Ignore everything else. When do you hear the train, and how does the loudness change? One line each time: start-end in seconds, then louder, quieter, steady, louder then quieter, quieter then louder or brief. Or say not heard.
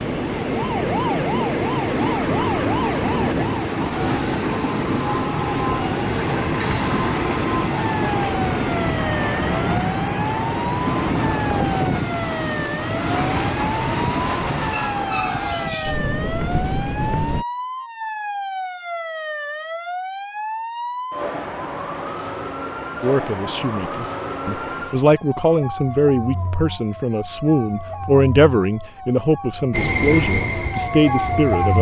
0.0-17.4 steady
29.7-31.7 brief.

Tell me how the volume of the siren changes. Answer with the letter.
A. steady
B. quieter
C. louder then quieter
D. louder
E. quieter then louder
A.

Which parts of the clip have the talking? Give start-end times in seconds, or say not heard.
23.0-31.7.